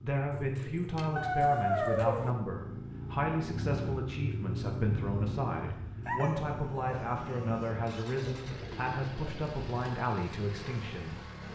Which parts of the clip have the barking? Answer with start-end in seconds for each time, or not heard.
1.1-2.3, 6.0-7.8.